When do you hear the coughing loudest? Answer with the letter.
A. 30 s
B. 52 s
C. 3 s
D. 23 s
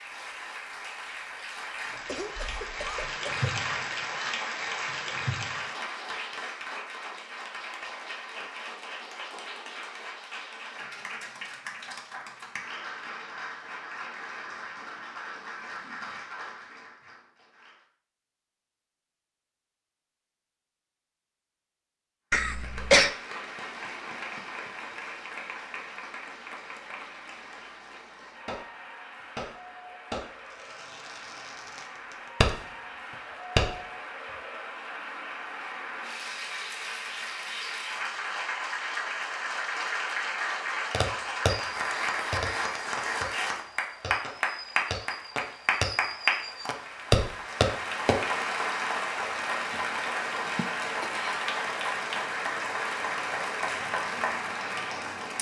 D.